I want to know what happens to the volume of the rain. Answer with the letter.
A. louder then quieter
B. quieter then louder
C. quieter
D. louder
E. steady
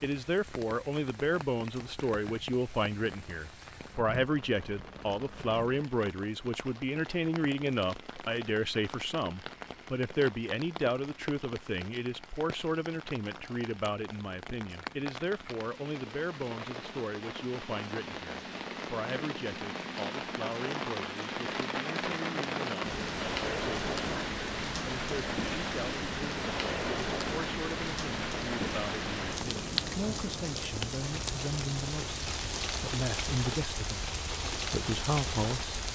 D.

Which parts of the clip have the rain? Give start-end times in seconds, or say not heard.
0.0-35.9.